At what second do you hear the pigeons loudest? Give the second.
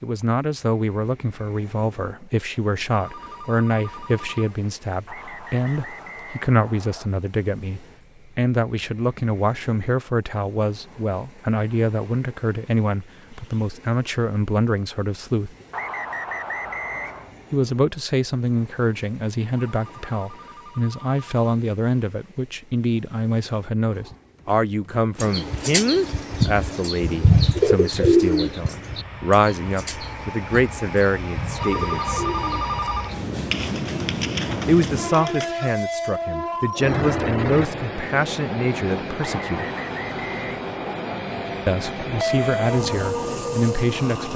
28 s.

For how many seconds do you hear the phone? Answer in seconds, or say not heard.
5 s.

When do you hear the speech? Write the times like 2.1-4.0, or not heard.
0.0-15.5, 17.5-32.2, 34.6-39.6, 41.6-44.3.